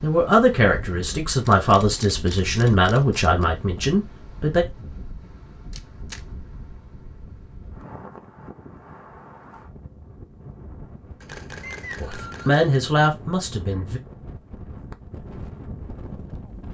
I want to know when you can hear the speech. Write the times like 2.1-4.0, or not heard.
0.0-4.7, 12.0-14.0.